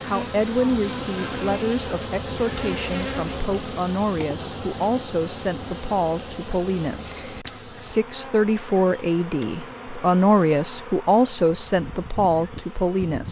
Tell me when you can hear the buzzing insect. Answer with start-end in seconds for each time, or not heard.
0.0-13.2.